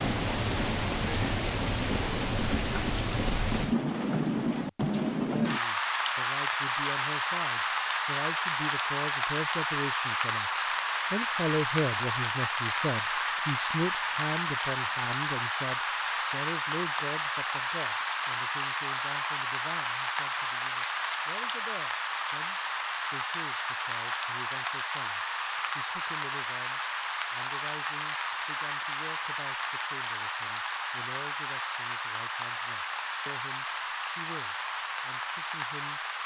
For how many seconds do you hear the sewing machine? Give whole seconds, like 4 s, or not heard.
not heard.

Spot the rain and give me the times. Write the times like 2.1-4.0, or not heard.
0.0-36.2.